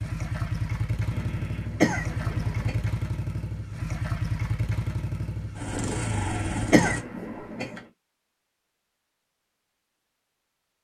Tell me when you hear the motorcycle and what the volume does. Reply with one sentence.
The motorcycle can be heard from 0.0 to 7.0 s, at a steady volume.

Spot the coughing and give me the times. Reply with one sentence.
The coughing can be heard from 1.1 to 2.9 s and from 6.0 to 7.8 s.